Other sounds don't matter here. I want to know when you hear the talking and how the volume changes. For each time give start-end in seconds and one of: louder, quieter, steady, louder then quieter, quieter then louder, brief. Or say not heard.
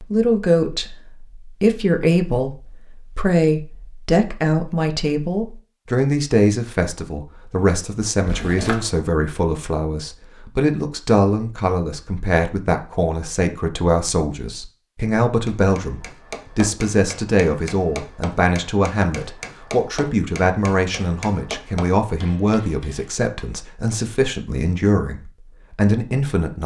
0.0-26.6 steady.